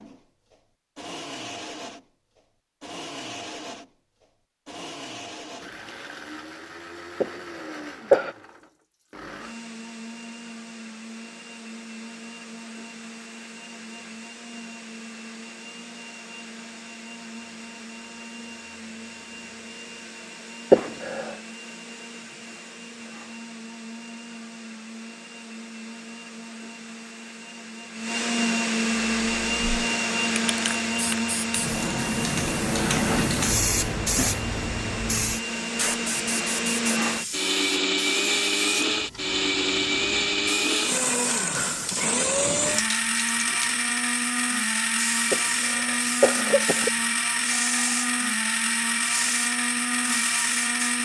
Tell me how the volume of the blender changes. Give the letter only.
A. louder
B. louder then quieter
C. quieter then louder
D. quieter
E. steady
A.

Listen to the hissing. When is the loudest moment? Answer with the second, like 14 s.
33 s.